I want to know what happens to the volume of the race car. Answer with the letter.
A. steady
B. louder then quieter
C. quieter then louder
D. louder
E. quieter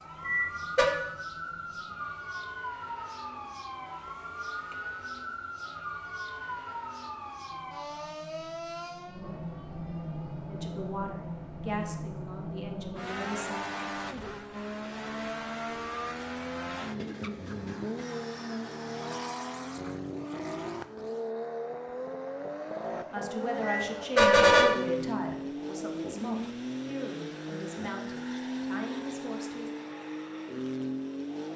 D.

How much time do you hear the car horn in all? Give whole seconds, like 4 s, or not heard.
2 s.